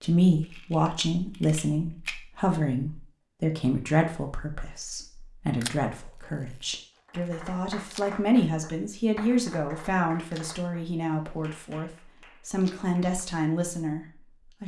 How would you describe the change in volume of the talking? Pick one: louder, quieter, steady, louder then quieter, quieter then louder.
steady.